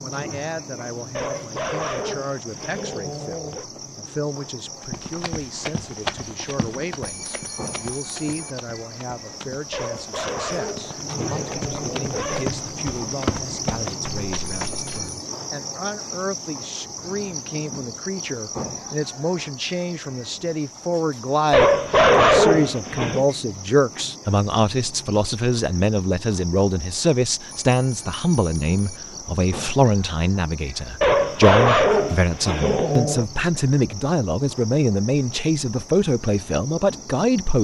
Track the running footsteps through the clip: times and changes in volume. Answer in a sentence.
You can hear the running footsteps from 4.8 to 15.1 s, getting quieter then louder.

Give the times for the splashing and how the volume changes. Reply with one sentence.
You can't hear the splashing here.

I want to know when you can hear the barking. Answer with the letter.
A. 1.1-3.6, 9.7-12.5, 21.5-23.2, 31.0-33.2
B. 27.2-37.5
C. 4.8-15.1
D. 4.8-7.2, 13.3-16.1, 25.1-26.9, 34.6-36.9
A.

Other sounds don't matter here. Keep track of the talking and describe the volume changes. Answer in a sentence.
The loudness of the talking goes up.